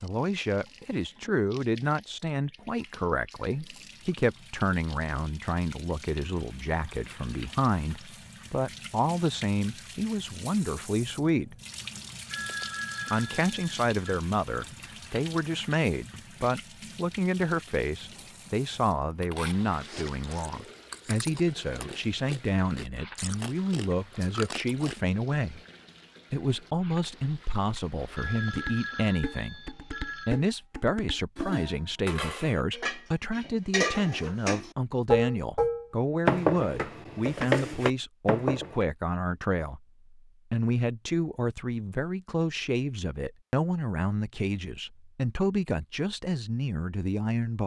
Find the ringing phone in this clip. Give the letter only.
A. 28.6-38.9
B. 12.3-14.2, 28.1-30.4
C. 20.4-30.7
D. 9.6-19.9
B.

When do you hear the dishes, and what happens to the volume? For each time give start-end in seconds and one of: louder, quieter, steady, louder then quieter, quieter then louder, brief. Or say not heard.
28.6-38.9 louder then quieter.